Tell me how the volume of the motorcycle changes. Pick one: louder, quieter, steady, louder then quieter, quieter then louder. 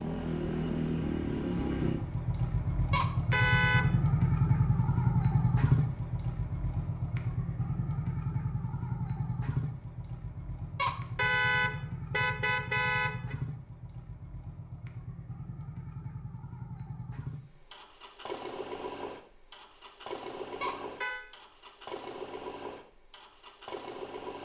quieter.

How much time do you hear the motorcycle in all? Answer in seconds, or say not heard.
24 s.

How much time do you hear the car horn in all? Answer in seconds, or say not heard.
4 s.